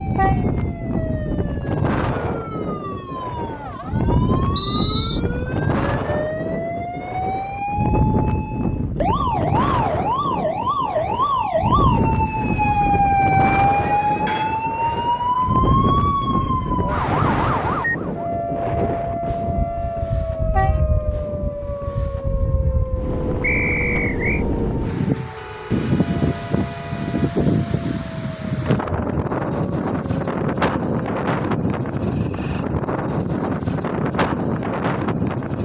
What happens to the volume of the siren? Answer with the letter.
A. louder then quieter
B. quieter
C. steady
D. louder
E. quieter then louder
A.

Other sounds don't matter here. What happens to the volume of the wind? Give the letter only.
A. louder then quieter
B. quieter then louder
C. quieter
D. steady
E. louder
D.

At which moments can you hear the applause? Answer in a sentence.
You can't hear the applause here.